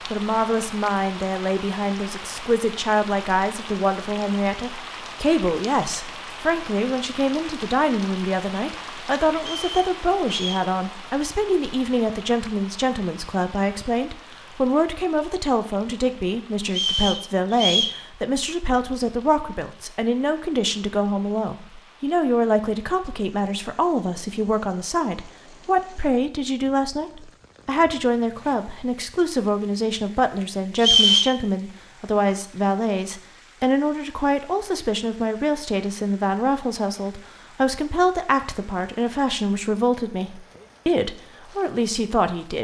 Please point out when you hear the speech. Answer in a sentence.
You can hear the speech from 0.1 to 42.5 s.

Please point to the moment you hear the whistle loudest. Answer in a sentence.
The loudest moment of the whistle is at 31 seconds.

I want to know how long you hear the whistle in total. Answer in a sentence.
The whistle can be heard for 3 seconds in total.